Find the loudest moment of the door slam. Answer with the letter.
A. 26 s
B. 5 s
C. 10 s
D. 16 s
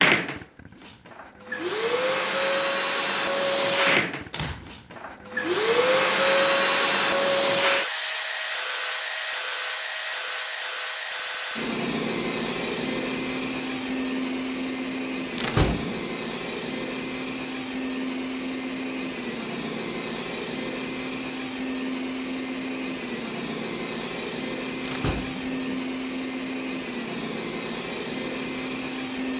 D.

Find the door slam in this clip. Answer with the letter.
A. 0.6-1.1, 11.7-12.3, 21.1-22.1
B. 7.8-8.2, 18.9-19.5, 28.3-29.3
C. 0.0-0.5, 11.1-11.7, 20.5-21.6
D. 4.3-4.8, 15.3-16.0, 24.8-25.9
D.